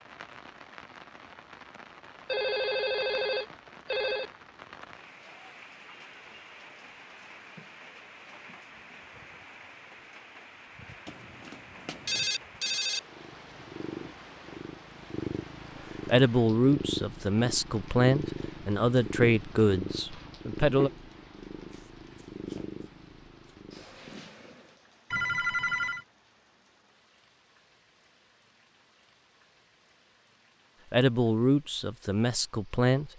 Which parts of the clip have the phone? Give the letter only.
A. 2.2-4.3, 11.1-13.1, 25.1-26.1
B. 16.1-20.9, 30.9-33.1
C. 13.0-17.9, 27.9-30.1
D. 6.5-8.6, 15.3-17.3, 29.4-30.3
A.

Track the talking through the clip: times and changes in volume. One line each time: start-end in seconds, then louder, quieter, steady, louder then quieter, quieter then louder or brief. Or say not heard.
16.1-20.9 quieter
30.9-33.1 brief.